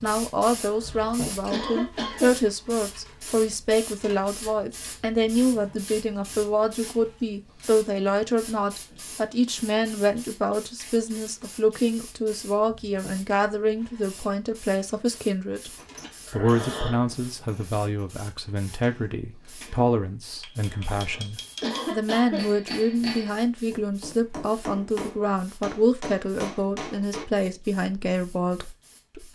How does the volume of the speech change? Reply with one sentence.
The loudness of the speech stays about the same.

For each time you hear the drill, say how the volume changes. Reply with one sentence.
You can't hear the drill here.